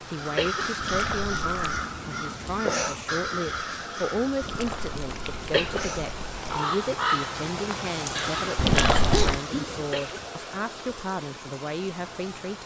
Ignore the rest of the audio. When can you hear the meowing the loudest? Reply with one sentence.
The loudest moment of the meowing is at 9 seconds.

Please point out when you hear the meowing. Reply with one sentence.
You can hear the meowing from 0.8 to 1.8 s, from 4.4 to 6.6 s and from 8.6 to 9.4 s.